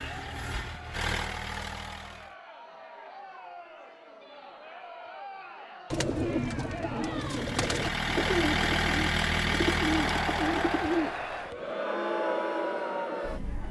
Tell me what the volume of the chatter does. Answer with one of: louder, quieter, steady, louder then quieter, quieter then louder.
louder.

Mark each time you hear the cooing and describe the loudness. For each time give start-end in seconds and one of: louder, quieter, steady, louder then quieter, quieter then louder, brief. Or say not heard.
5.9-11.6 steady.